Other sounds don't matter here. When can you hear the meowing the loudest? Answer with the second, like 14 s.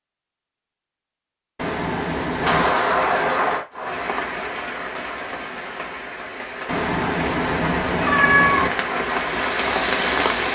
8 s.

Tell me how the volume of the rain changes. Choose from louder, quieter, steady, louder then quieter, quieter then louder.
quieter then louder.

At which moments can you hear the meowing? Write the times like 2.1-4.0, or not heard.
1.6-2.8, 6.7-8.7.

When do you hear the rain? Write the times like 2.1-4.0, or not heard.
2.4-10.4.